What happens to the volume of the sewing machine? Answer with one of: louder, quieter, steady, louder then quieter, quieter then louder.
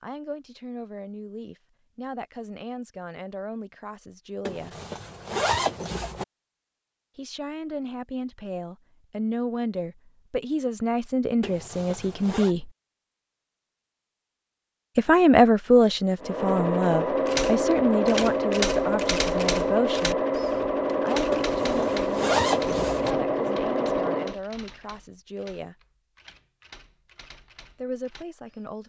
steady.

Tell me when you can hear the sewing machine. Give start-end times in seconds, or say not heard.
16.2-24.4.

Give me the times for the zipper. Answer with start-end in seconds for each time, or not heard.
4.5-6.2, 11.4-12.6, 21.3-23.1.